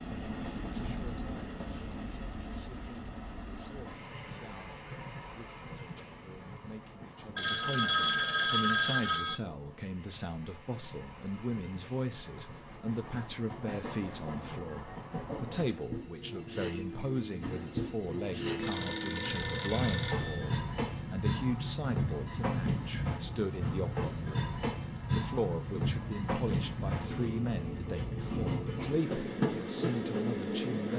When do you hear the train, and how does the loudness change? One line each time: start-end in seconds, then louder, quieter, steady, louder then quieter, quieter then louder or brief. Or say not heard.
0.0-30.9 quieter then louder.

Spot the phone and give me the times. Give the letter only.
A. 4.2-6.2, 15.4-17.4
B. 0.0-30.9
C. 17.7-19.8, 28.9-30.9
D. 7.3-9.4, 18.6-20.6
D.